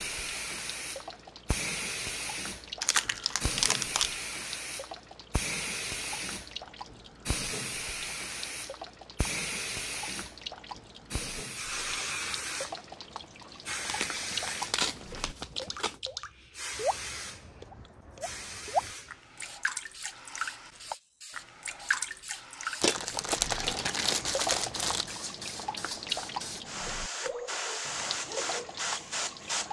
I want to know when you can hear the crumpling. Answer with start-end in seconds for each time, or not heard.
2.8-4.2, 13.8-16.0, 22.8-25.2.